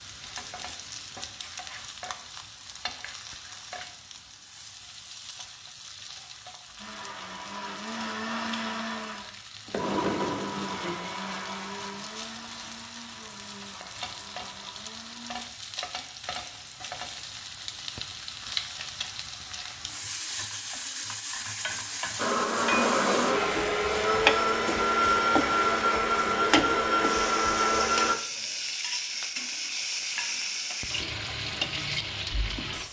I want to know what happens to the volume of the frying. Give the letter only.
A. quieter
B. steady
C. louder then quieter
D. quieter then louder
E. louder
E.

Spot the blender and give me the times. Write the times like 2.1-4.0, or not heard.
6.8-15.5, 22.1-28.1.